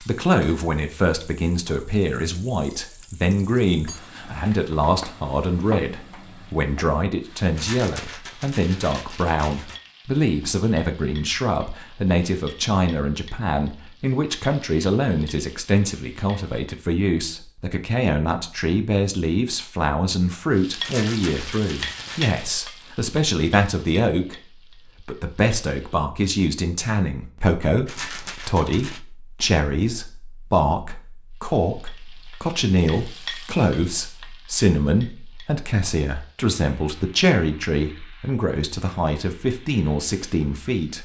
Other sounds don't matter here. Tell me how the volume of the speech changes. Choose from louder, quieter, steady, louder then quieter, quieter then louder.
steady.